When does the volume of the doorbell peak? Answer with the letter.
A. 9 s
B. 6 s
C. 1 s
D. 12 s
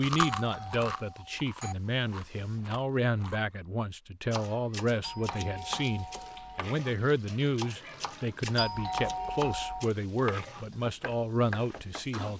A.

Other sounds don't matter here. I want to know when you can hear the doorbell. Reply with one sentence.
The doorbell can be heard from 0.1 to 1.8 s, from 5.0 to 6.7 s and from 8.6 to 9.9 s.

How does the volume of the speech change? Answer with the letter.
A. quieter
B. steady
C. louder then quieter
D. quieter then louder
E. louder
B.